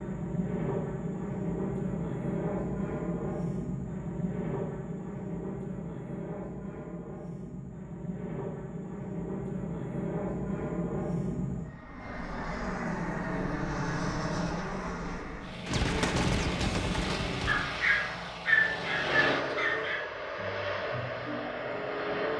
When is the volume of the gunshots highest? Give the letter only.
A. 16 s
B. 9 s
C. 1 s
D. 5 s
A.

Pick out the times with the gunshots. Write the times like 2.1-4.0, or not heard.
15.7-17.6.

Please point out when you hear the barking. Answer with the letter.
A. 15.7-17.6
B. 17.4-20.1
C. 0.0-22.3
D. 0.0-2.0
B.